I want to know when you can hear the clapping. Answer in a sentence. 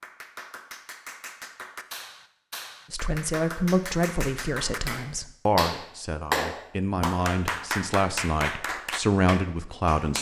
You can hear the clapping from 0.0 to 10.1 s.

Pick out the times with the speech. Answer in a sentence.
The speech can be heard from 2.9 to 10.1 s.